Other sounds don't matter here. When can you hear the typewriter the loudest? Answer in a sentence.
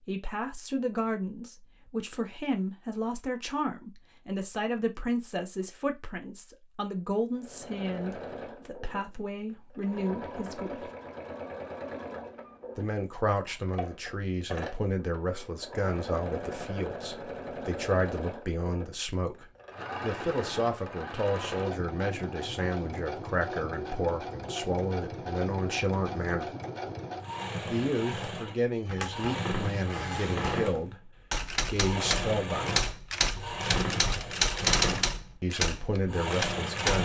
The loudest moment of the typewriter is at 35 seconds.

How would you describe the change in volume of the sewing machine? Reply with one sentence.
The volume of the sewing machine goes up.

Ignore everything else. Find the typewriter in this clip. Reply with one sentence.
You can hear the typewriter from 28.9 to 36.9 s.